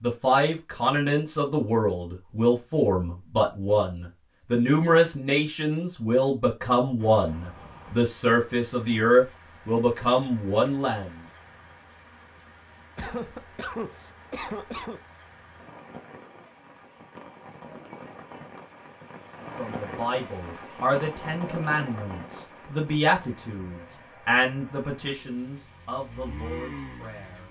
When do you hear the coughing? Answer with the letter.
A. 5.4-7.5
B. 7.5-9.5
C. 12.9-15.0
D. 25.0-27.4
C.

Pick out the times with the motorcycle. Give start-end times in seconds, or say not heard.
25.0-27.4.